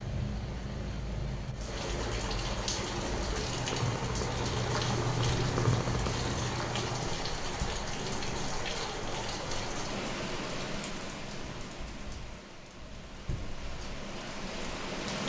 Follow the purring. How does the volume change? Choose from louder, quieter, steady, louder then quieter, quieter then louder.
louder then quieter.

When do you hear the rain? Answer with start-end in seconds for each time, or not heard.
0.0-15.2.